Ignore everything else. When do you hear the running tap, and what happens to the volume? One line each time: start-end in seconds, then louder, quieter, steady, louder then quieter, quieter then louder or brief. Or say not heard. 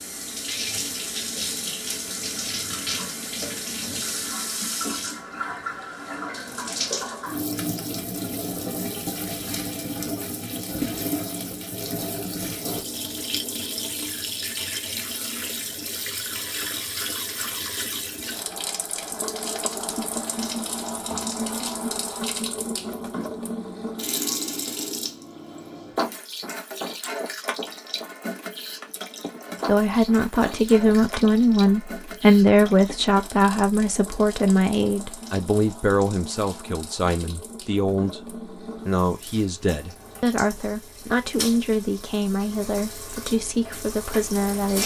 0.0-44.8 quieter.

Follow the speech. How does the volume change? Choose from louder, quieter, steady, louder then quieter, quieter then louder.
quieter.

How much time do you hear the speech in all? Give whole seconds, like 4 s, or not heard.
15 s.